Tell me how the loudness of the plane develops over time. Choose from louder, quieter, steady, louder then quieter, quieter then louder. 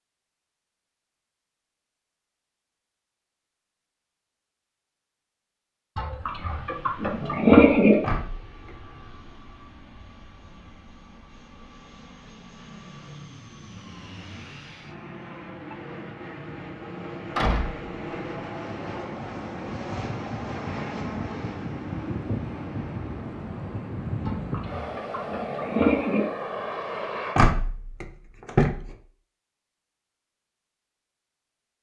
louder.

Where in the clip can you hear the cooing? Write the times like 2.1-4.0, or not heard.
6.0-8.0, 24.2-26.2.